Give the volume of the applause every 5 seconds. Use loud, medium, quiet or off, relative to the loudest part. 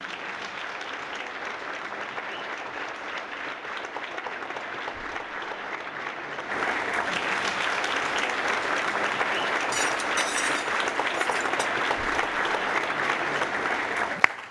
medium, loud, loud.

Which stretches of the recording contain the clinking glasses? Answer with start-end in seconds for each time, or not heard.
9.7-11.7.